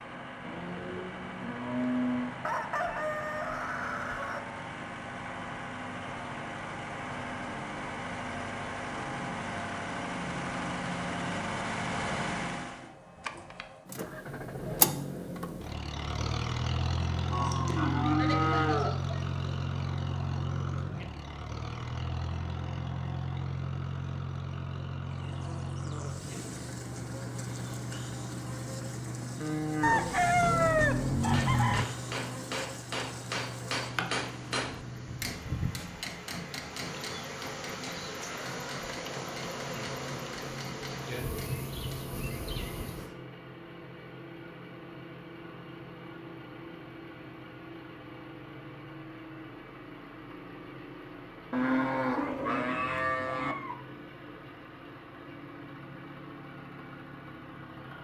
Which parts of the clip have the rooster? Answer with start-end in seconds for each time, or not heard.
2.4-4.4, 29.8-31.9, 52.1-53.8.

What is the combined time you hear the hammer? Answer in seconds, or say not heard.
12 s.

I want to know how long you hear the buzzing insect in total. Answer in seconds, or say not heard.
18 s.